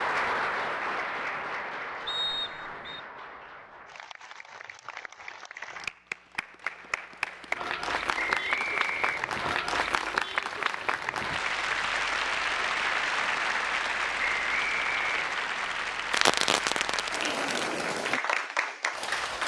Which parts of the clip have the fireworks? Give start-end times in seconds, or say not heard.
16.1-17.7.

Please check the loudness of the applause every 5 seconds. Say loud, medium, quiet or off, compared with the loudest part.
medium, loud, loud, loud.